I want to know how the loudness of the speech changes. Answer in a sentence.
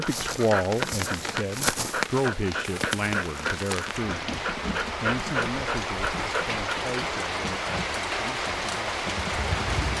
The loudness of the speech goes down.